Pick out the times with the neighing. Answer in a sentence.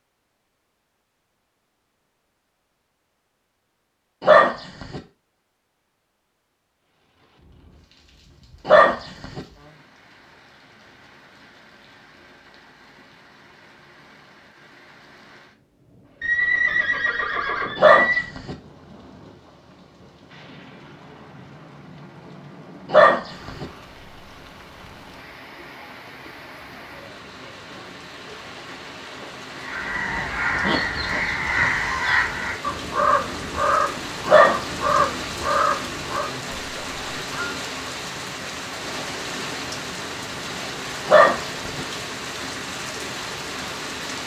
The neighing can be heard from 16.2 to 18.2 s.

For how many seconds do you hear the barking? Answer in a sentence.
The barking can be heard for 5 seconds in total.